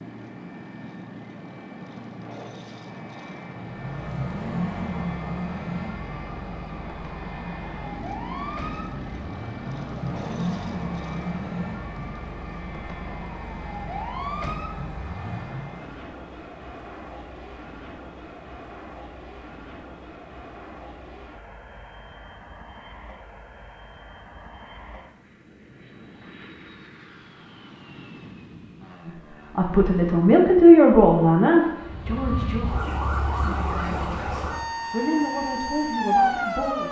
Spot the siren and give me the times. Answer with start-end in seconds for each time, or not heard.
3.5-15.9, 31.8-36.8.